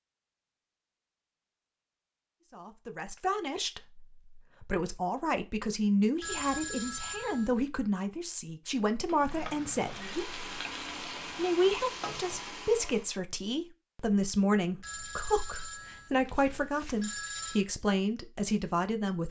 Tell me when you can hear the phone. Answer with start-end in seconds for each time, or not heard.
6.2-7.7, 14.8-17.6.